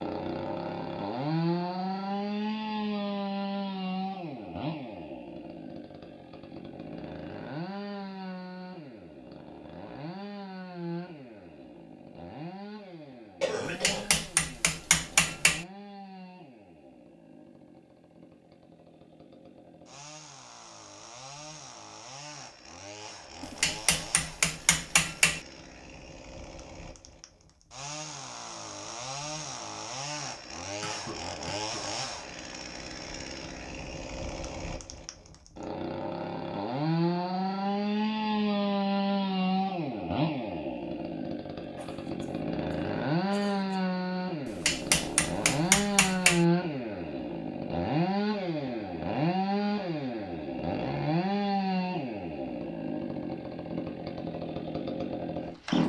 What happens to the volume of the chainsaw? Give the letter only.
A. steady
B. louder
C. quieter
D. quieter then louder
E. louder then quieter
D.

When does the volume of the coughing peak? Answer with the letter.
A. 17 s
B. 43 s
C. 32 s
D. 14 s
D.